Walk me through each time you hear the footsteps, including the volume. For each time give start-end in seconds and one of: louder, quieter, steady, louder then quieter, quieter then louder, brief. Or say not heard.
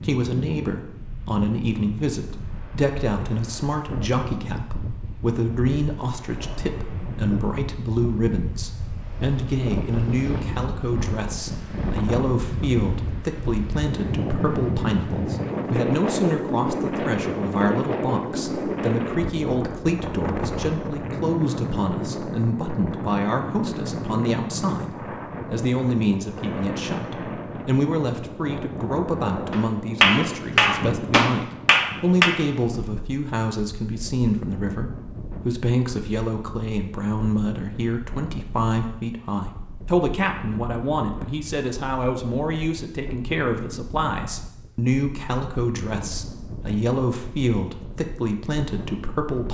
not heard.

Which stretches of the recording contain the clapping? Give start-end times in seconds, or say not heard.
29.5-32.3.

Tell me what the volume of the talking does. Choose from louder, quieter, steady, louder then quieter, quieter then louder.
steady.